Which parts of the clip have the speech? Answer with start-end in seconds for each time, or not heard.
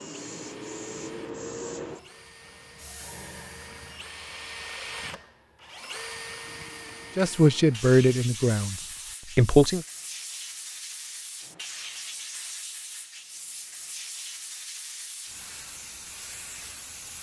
7.2-9.8.